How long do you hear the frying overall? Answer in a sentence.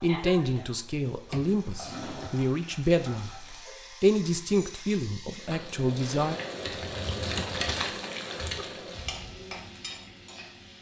The frying can be heard for 11 seconds in total.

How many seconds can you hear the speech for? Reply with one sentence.
You can hear the speech for 6 seconds altogether.